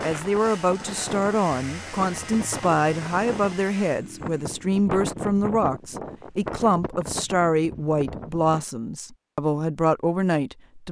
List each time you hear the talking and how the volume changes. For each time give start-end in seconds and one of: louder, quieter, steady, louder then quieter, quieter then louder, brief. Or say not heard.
0.0-10.8 steady.